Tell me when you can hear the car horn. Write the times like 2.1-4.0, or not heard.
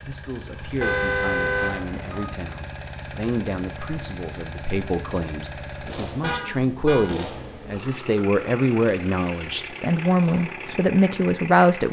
0.8-2.2, 6.2-7.0.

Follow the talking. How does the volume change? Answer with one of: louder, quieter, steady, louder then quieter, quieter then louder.
louder.